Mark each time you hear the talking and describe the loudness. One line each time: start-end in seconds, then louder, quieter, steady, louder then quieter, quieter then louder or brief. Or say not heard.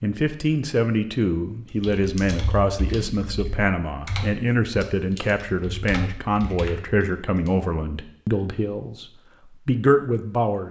0.0-10.6 steady.